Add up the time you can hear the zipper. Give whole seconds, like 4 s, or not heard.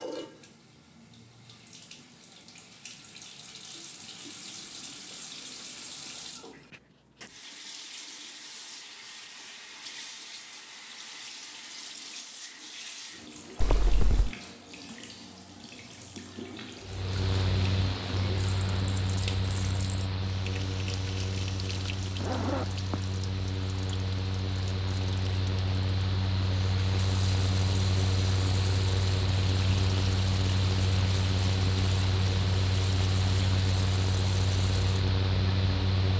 2 s.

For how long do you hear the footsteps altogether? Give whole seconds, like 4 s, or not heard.
not heard.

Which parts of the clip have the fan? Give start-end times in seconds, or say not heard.
16.8-36.1.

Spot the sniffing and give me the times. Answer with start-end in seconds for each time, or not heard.
not heard.